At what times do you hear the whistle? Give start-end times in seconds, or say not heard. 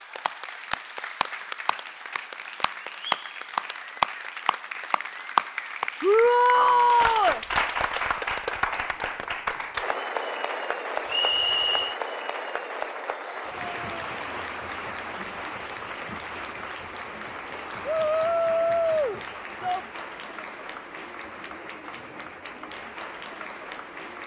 11.1-12.0.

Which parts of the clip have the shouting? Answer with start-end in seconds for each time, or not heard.
6.0-7.4, 17.9-19.8.